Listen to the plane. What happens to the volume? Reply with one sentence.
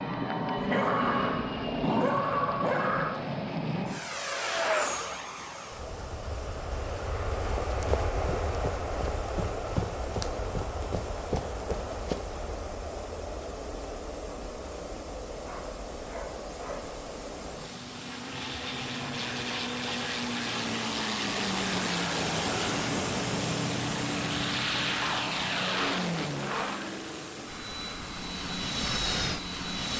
The volume of the plane goes down, then up.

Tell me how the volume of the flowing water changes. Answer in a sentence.
The volume of the flowing water goes up.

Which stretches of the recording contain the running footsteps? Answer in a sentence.
The running footsteps can be heard from 7.3 to 12.3 s.